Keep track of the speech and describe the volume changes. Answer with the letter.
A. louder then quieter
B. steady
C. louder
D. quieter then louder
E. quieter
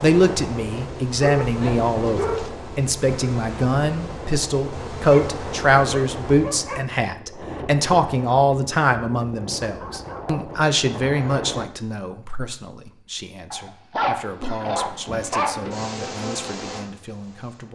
E.